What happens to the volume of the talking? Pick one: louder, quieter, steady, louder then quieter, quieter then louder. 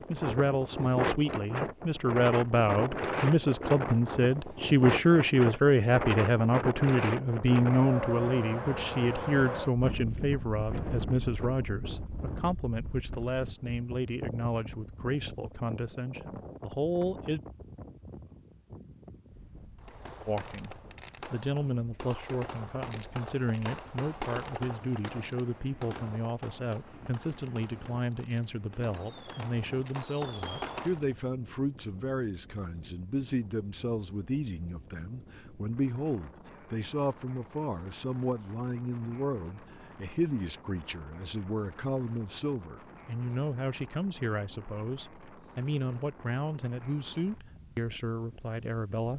quieter.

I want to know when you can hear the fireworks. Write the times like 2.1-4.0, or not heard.
19.8-31.1.